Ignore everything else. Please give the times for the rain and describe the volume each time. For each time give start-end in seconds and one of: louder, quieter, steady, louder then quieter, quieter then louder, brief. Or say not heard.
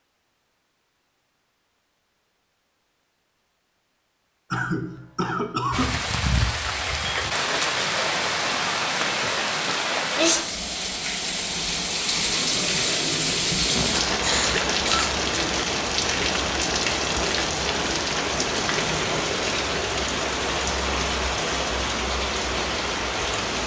5.7-23.6 steady.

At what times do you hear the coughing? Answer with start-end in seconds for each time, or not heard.
4.5-6.0, 13.7-15.1.